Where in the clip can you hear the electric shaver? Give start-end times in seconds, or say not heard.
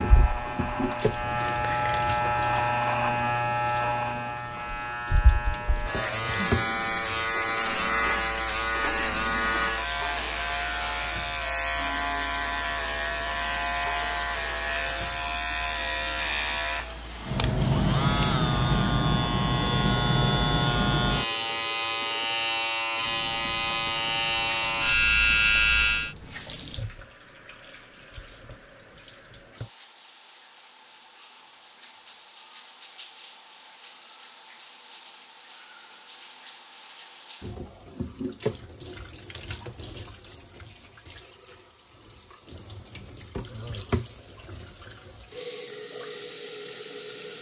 0.0-26.1.